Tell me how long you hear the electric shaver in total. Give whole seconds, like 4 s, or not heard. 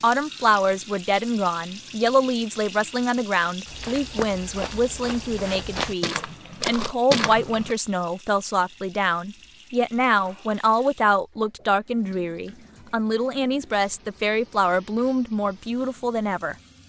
not heard.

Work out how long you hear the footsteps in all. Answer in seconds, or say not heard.
4 s.